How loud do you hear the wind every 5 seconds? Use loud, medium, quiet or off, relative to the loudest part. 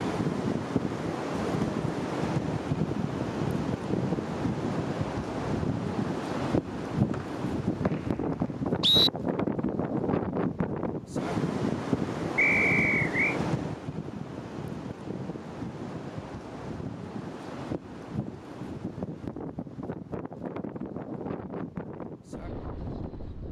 loud, loud, loud, medium, medium.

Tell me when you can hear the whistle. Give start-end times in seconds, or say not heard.
7.1-9.1, 12.3-13.4.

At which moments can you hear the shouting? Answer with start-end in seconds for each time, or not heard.
not heard.